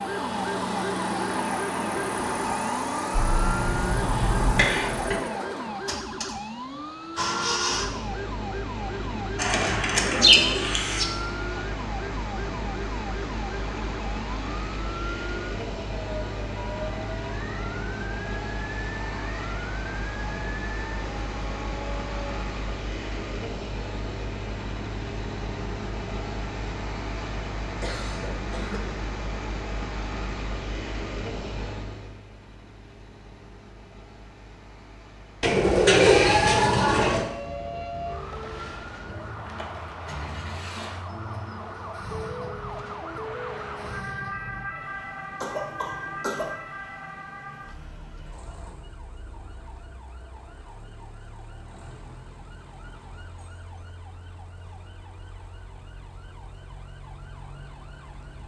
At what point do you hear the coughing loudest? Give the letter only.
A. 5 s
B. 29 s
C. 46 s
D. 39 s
A.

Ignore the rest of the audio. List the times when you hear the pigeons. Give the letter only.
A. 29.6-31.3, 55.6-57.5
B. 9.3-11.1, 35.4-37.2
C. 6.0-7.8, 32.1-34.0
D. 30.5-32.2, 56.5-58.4
B.